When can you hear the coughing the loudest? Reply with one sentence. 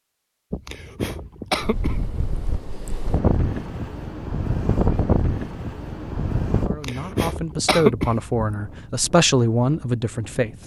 The volume of the coughing peaks at 8 seconds.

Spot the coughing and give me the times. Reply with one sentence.
The coughing can be heard from 0.5 to 2.1 s and from 6.7 to 8.4 s.